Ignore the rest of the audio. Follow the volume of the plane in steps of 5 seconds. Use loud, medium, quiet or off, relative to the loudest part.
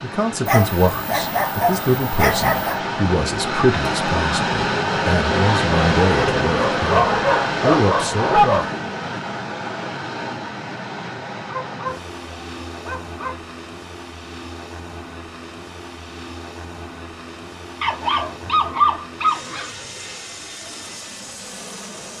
loud, loud, medium, quiet, quiet.